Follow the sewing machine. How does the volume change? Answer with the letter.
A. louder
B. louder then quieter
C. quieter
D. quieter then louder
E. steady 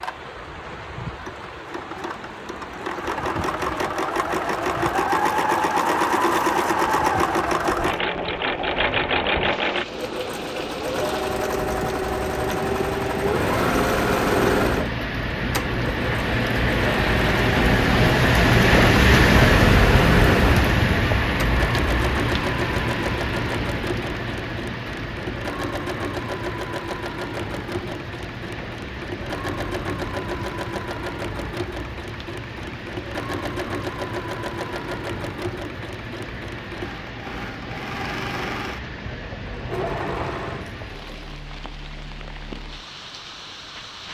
C.